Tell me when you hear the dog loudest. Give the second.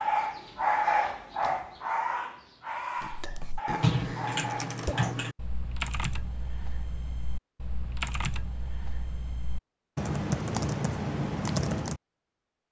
1 s.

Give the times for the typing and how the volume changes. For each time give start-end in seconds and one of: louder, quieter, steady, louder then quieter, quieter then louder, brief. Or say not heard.
3.0-12.0 quieter then louder.